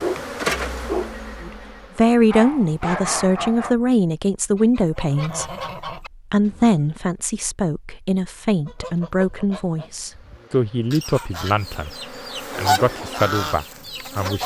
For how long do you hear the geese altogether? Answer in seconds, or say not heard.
8 s.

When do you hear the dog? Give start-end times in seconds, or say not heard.
0.0-3.8.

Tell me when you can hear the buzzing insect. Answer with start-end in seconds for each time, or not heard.
0.0-2.1, 9.9-14.4.